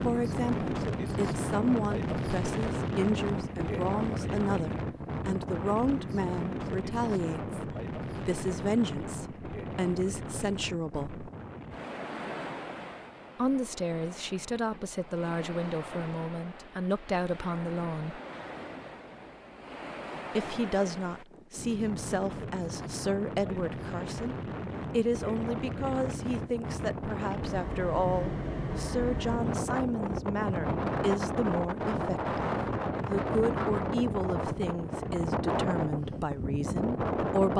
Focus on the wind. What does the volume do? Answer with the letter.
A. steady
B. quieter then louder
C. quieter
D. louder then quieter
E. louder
B.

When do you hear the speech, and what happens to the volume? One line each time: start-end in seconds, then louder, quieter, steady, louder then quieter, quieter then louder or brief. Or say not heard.
0.0-11.2 steady
13.3-18.2 steady
20.4-37.5 steady.